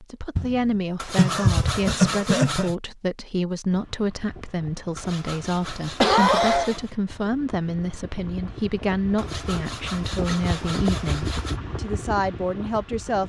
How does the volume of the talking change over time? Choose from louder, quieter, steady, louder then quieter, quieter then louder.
steady.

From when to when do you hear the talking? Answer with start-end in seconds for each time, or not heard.
0.0-13.2.